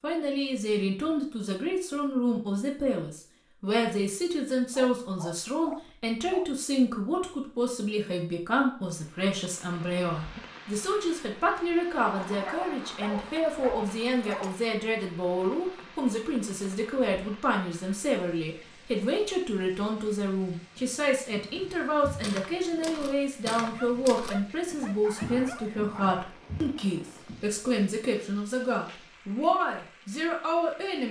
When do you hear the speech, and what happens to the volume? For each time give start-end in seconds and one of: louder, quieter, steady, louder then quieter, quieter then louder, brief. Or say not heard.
0.0-31.0 steady.